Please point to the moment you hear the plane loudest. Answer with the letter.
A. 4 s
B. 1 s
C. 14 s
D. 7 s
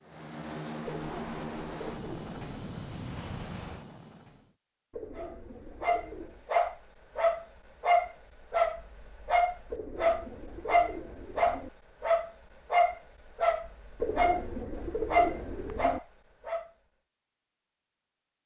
B.